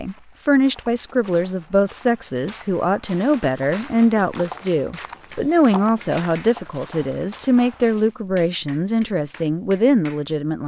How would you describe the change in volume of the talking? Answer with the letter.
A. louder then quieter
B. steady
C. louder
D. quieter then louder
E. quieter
B.